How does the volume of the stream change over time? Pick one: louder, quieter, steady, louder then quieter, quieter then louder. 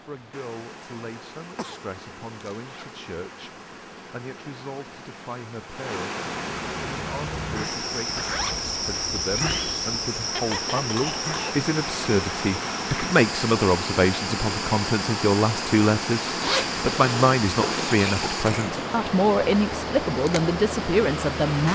louder.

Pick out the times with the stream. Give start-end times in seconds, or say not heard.
0.0-21.7.